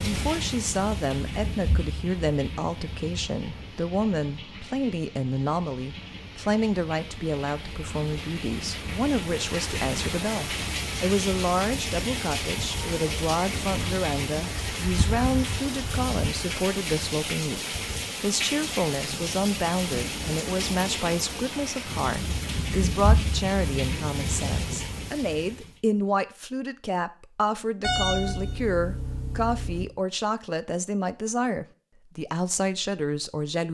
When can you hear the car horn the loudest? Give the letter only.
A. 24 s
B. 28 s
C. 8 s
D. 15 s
B.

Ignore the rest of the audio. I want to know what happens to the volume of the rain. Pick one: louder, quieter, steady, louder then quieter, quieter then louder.
louder.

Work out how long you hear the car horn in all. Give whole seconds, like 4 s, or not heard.
2 s.